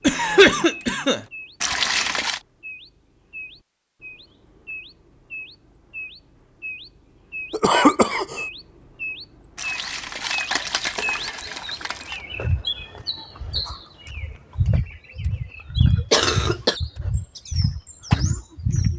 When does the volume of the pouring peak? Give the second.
2 s.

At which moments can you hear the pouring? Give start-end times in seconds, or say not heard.
1.6-2.4, 9.6-12.2.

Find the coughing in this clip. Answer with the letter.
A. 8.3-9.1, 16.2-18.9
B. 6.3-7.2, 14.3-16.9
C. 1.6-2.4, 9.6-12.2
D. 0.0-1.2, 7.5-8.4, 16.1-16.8
D.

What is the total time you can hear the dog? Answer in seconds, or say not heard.
not heard.